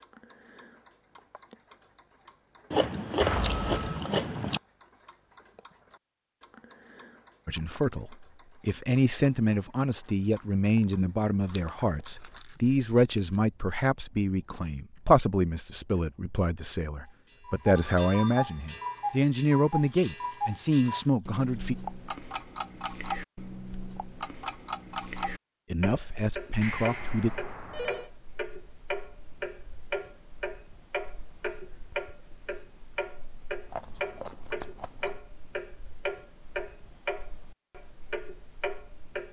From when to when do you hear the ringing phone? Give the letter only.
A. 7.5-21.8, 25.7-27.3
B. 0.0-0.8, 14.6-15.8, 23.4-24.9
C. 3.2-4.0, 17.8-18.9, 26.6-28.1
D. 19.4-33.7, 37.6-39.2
C.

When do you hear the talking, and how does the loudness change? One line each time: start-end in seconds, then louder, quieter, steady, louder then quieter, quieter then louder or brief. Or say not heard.
7.5-21.8 steady
25.7-27.3 brief.